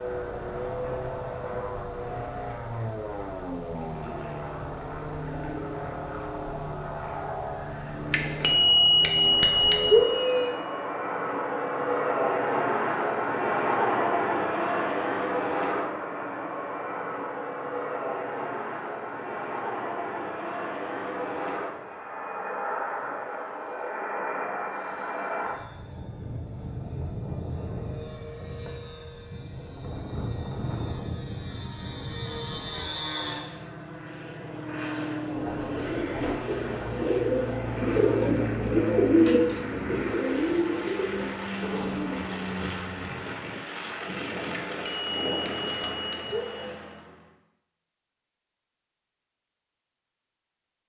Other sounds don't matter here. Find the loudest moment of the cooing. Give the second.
39 s.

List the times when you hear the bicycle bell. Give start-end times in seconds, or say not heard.
8.1-10.6, 44.5-46.8.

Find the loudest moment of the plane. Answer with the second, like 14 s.
14 s.